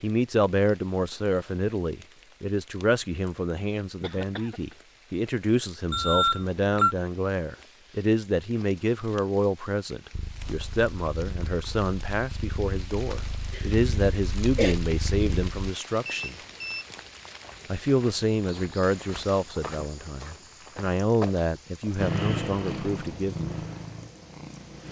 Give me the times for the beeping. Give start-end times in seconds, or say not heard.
5.9-7.0, 16.1-16.9.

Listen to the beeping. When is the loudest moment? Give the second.
6 s.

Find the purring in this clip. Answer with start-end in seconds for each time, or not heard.
10.1-15.7, 21.9-24.8.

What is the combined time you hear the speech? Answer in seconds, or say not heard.
22 s.